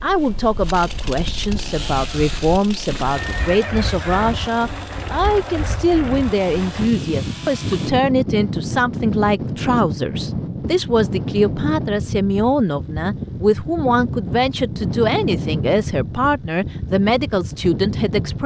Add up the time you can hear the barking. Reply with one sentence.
The barking can't be heard in this clip.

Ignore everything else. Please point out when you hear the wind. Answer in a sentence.
You can hear the wind from 0.0 to 18.4 s.